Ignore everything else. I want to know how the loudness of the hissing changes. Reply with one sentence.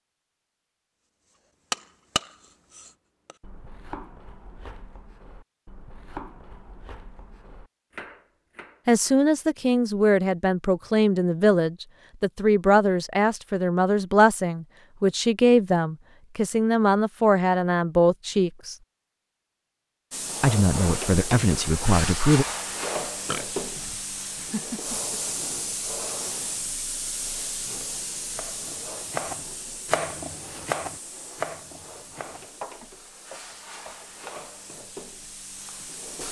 The volume of the hissing goes down.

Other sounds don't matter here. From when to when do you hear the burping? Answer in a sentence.
The burping can be heard from 23.3 to 25.1 s.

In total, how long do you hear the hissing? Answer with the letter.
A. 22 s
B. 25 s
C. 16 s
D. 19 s
C.